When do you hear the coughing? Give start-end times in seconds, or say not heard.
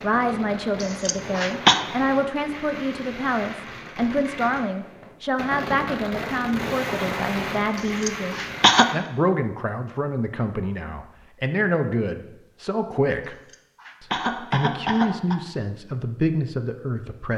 0.8-1.9, 8.0-8.9, 13.5-15.3.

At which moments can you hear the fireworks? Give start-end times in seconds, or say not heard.
0.0-9.0.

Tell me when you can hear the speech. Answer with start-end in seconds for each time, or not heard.
0.0-13.3, 14.0-17.3.